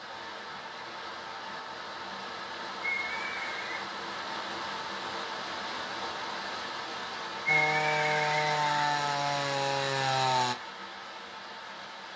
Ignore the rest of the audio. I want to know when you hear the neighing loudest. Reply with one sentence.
The loudest moment of the neighing is at 8 seconds.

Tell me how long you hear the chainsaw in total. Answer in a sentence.
You can hear the chainsaw for 3 seconds altogether.